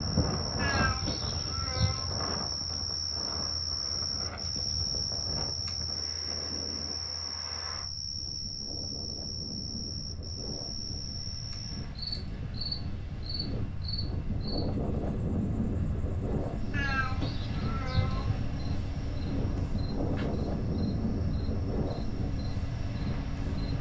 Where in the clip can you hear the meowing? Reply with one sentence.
You can hear the meowing from 0.6 to 2.2 s and from 16.7 to 18.4 s.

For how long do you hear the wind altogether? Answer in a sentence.
You can hear the wind for 24 seconds altogether.